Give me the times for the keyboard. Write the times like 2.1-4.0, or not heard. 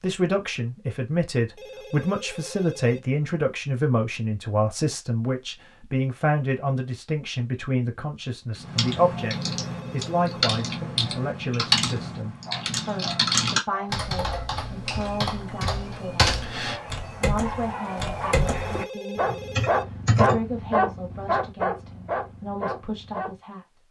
8.6-20.4.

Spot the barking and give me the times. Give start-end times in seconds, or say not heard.
12.1-23.4.